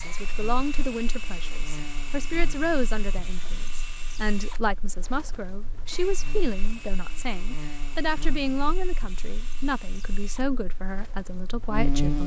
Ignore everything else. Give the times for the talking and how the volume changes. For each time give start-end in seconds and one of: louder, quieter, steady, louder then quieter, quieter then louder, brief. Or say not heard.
0.0-12.2 steady.